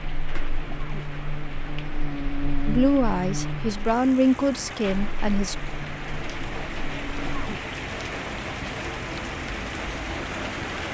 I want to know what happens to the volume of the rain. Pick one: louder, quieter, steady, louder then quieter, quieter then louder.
louder.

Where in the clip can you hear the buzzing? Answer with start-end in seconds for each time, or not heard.
0.0-7.5.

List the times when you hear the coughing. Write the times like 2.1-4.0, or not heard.
0.7-1.1, 7.2-7.7.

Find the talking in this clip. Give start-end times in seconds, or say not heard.
2.6-5.5.